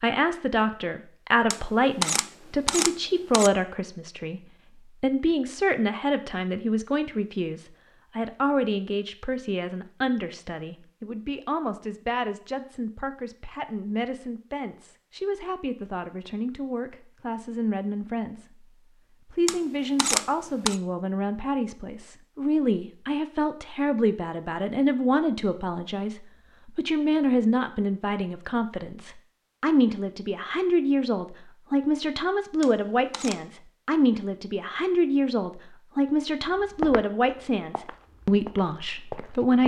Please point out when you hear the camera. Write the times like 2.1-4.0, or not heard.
1.5-3.5, 19.4-20.8, 32.6-33.4.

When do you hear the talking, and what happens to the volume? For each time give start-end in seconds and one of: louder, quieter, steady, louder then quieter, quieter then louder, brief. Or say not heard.
0.0-18.6 quieter
19.2-39.6 steady.